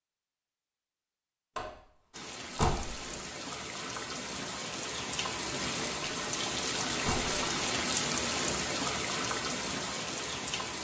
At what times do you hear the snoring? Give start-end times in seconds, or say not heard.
not heard.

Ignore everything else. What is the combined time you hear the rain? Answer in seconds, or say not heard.
9 s.